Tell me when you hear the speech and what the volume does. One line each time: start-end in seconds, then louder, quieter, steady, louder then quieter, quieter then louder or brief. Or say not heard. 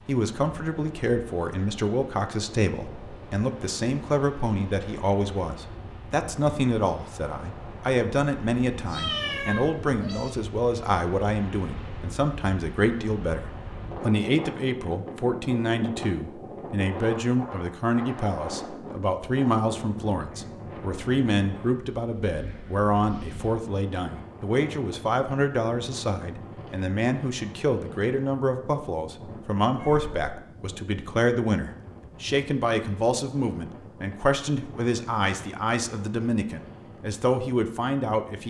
0.1-38.4 steady.